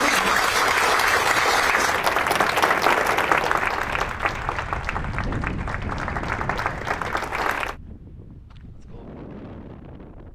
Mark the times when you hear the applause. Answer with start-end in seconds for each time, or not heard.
0.0-7.8.